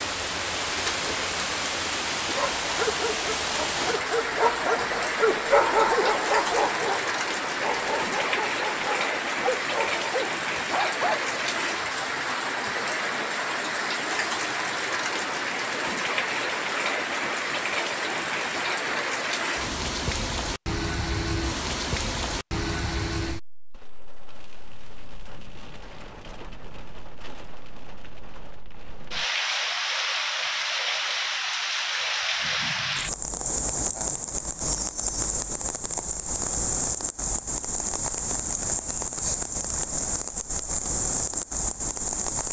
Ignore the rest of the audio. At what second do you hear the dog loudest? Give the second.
6 s.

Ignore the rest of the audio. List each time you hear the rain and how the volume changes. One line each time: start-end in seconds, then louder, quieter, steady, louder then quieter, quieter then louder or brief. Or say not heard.
0.0-42.4 steady.